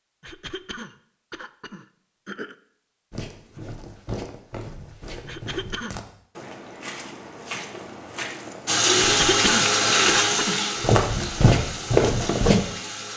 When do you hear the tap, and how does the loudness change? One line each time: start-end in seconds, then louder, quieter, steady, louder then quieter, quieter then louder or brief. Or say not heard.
8.7-13.1 quieter.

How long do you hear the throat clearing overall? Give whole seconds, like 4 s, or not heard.
5 s.